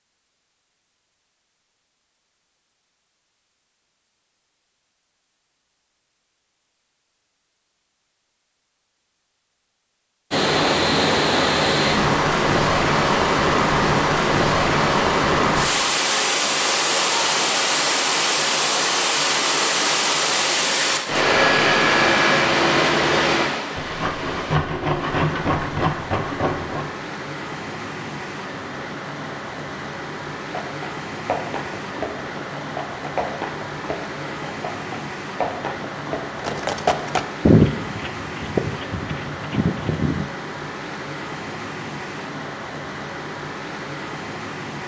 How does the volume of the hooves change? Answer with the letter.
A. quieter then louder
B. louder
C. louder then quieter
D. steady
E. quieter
C.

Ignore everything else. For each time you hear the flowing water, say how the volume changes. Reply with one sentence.
You can hear the flowing water from 10.3 to 44.8 s, getting quieter.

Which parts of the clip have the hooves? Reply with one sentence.
The hooves can be heard from 30.4 to 40.2 s.